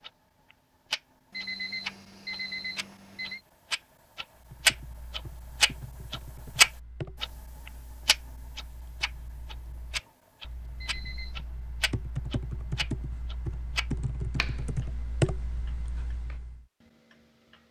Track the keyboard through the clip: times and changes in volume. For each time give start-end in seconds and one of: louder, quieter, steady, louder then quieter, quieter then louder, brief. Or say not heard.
4.3-16.6 quieter then louder.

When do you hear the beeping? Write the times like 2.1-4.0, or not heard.
1.3-3.4, 10.8-11.4.